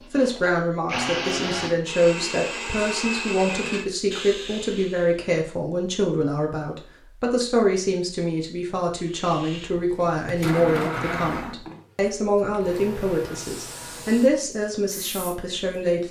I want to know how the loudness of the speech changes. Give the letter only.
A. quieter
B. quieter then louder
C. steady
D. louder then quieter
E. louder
C.